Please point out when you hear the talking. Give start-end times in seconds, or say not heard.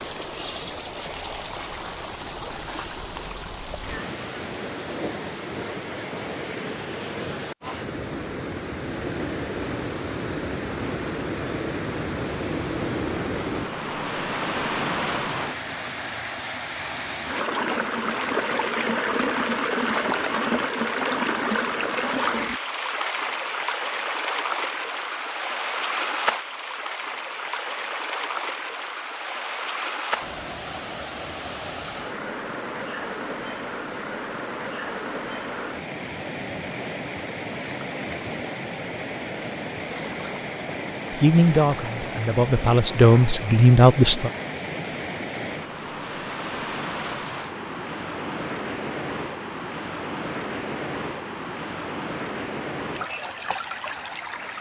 41.1-44.3.